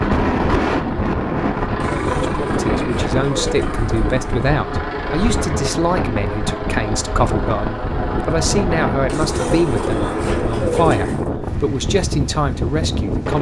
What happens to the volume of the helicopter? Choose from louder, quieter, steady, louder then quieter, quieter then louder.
steady.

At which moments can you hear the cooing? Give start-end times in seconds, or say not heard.
1.8-4.2, 9.1-11.3.